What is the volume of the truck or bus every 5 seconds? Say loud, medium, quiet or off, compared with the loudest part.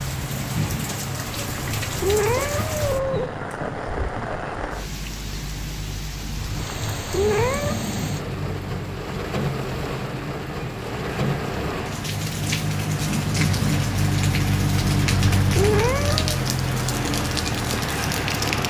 medium, medium, loud, loud.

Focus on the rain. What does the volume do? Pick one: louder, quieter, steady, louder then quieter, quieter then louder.
steady.